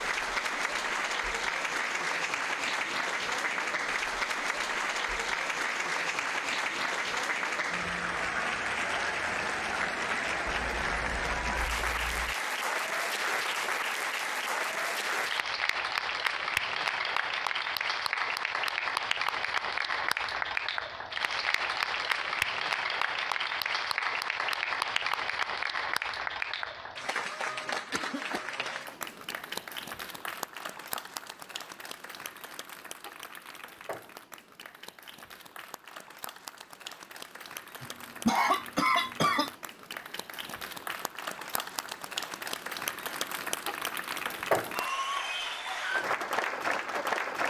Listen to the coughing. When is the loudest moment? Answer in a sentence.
The volume of the coughing peaks at 38 seconds.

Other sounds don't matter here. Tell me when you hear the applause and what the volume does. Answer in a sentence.
You can hear the applause from 0.0 to 47.4 s, getting quieter then louder.